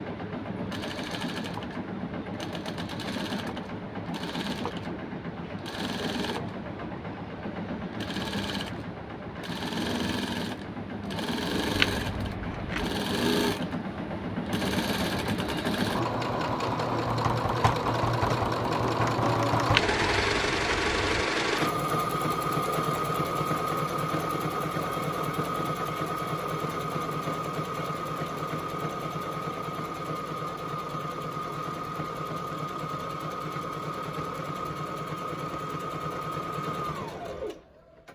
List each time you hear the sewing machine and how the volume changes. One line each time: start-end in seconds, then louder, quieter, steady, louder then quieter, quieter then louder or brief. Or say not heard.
0.0-38.0 louder then quieter.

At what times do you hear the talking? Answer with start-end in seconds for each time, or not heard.
not heard.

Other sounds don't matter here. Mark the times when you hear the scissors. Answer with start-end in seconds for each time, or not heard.
11.8-12.8, 19.7-21.2.